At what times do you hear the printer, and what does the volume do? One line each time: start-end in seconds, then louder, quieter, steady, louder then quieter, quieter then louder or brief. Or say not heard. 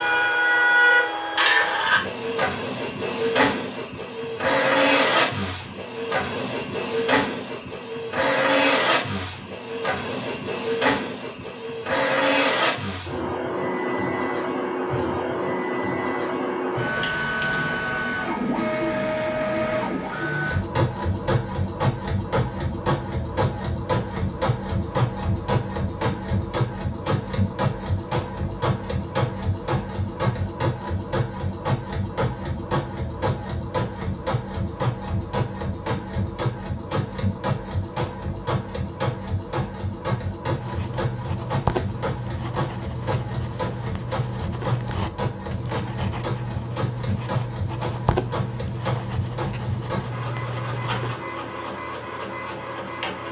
0.0-53.2 quieter.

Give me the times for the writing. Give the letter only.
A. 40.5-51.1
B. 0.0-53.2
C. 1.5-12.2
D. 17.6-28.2
A.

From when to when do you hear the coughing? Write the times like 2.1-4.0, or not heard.
not heard.